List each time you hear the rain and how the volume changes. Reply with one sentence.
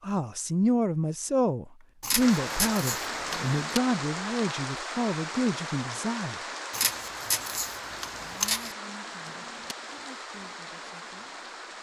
The rain can be heard from 2.1 to 11.7 s, getting quieter.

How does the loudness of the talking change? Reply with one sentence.
The volume of the talking goes down.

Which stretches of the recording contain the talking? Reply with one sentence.
You can hear the talking from 0.0 to 6.5 s and from 8.2 to 11.3 s.